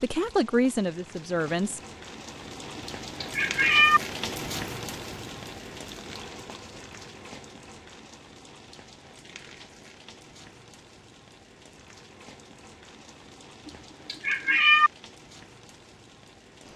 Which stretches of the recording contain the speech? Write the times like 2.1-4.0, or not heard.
0.0-1.8.